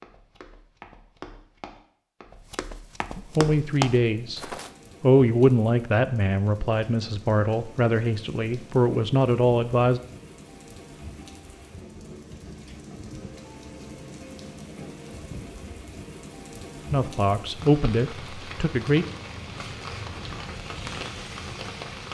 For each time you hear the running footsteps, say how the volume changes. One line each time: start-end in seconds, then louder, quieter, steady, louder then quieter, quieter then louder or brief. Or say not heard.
0.0-4.7 louder.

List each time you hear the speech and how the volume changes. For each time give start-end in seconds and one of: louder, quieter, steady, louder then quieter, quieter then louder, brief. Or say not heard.
3.1-4.4 brief
5.0-10.0 quieter then louder
16.9-19.1 brief.